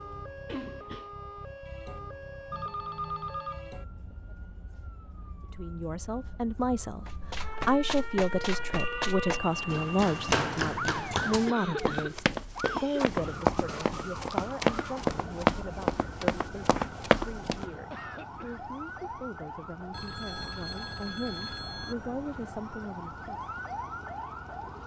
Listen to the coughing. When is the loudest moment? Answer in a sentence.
The loudest moment of the coughing is at 12 seconds.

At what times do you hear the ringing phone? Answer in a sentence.
The ringing phone can be heard from 2.5 to 3.7 s, from 8.8 to 10.3 s and from 19.9 to 21.9 s.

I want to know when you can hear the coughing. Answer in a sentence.
You can hear the coughing from 0.5 to 1.1 s, from 11.4 to 13.1 s and from 17.7 to 18.6 s.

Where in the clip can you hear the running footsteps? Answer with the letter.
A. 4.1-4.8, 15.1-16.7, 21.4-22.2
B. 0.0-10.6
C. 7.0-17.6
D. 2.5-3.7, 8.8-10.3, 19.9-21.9
C.